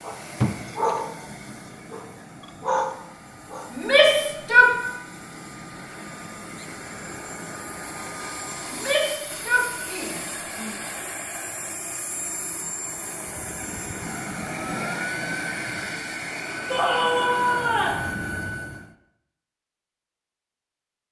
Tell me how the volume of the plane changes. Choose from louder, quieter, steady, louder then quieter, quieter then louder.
louder.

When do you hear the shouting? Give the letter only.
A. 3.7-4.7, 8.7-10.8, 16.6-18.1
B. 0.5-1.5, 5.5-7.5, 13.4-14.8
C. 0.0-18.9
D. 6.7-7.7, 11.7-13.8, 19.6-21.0
A.